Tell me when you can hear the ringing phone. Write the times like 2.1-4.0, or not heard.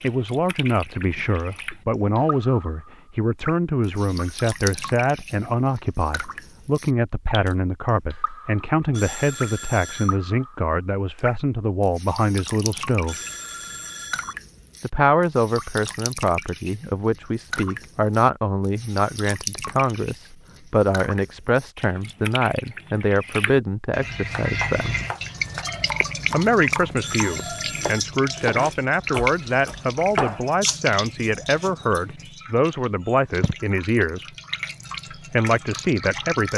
8.9-10.2, 13.1-14.3, 27.0-28.1.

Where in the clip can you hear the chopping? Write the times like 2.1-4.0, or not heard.
24.2-31.7.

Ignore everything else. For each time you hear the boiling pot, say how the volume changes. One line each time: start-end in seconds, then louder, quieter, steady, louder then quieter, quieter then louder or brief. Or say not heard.
not heard.